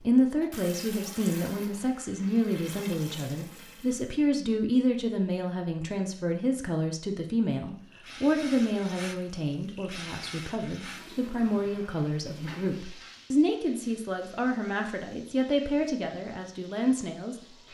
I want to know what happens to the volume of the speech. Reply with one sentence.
The volume of the speech stays about the same.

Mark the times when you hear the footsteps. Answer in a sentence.
You can't hear the footsteps here.